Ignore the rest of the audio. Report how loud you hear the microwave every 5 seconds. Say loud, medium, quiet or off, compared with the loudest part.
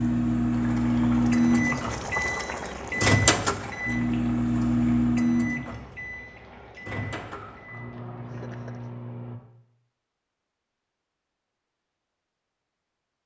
loud, medium, off.